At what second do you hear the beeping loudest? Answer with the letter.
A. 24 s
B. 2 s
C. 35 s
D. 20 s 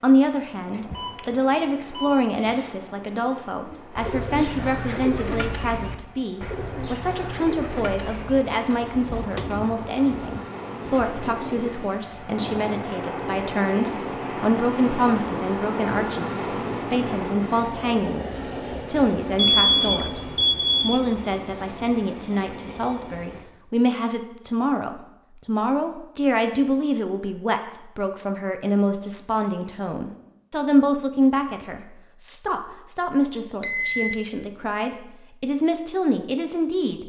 D.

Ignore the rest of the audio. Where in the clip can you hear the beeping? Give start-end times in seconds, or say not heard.
0.7-1.2, 1.9-2.7, 19.5-21.0, 33.6-34.2.